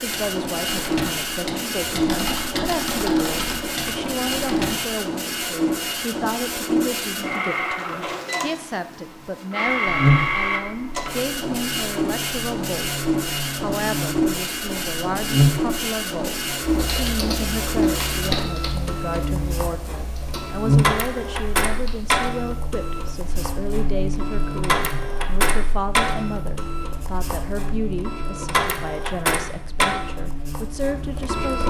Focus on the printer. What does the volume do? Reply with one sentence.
The volume of the printer stays about the same.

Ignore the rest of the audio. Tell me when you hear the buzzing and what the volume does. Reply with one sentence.
The buzzing can be heard from 9.8 to 31.6 s, getting louder then quieter.